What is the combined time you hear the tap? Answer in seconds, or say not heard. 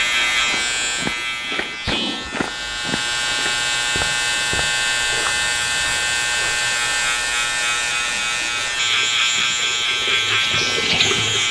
3 s.